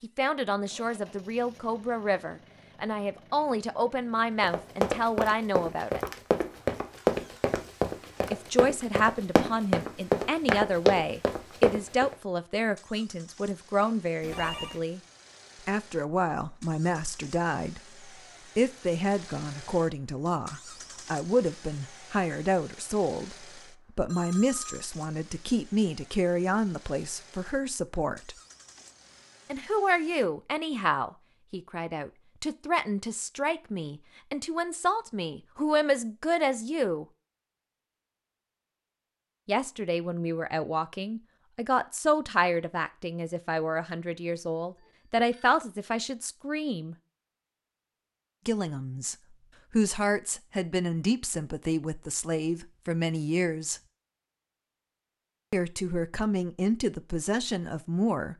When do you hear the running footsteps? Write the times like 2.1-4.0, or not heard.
4.4-12.2.